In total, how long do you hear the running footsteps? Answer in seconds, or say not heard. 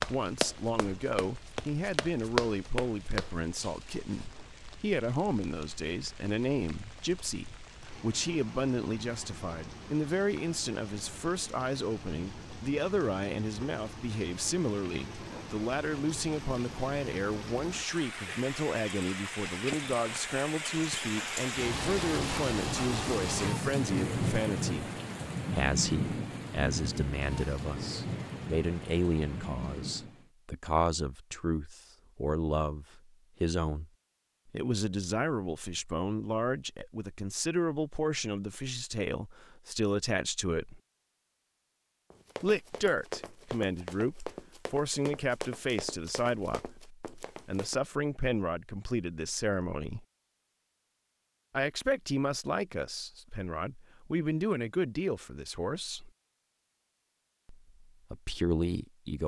9 s.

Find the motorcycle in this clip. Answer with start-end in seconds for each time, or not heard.
not heard.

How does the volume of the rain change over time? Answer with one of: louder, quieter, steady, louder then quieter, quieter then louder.
louder.